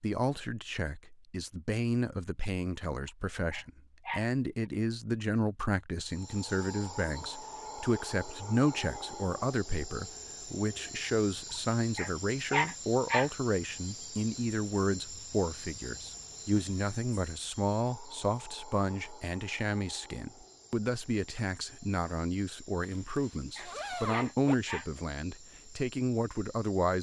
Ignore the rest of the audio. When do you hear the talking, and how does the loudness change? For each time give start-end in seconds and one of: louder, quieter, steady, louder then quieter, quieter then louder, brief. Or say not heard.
0.0-26.9 steady.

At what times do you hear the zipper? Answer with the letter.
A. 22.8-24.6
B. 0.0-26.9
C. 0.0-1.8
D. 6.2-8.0
A.